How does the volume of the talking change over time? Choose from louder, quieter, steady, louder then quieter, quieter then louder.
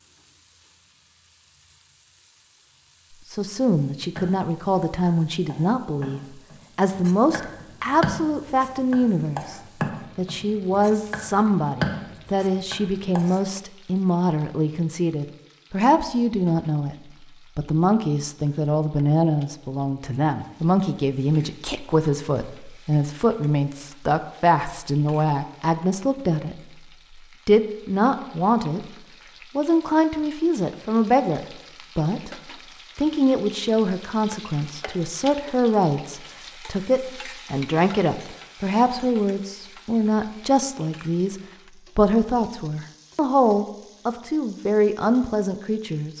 steady.